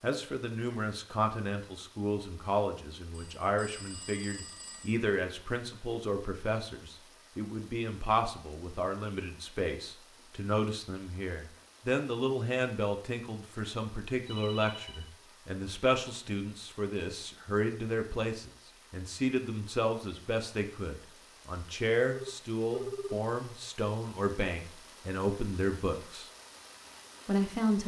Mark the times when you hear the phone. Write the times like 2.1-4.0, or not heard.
3.1-5.0, 14.2-15.1, 22.1-23.2.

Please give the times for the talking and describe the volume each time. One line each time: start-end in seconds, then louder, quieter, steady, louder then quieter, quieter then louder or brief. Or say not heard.
0.0-26.3 steady
27.2-27.8 brief.